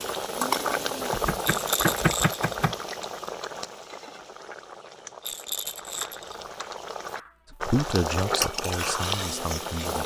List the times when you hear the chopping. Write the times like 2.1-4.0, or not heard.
1.1-2.8, 5.8-7.8.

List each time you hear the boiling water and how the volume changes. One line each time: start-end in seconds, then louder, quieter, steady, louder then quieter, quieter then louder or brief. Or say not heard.
0.0-10.0 quieter then louder.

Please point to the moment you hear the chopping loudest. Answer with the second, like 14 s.
2 s.